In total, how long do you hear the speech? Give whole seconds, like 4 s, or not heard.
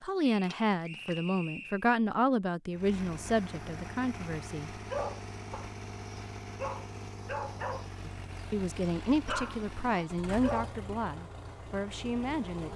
9 s.